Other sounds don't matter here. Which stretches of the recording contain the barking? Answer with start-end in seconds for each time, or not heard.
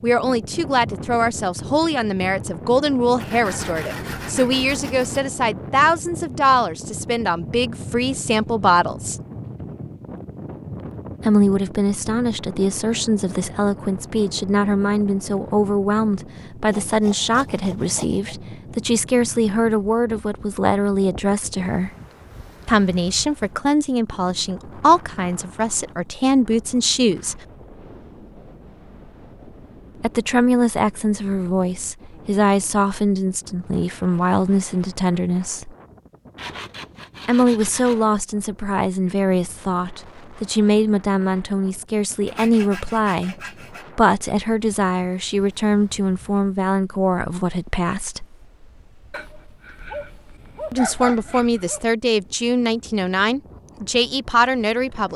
49.1-51.9.